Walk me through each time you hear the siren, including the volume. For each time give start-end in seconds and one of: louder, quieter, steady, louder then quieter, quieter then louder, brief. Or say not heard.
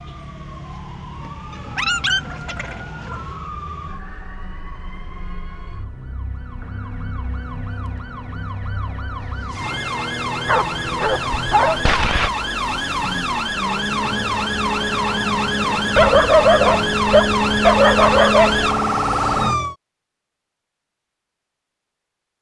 0.0-19.8 louder.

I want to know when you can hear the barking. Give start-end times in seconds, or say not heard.
1.5-3.2, 10.4-12.3, 15.9-18.7.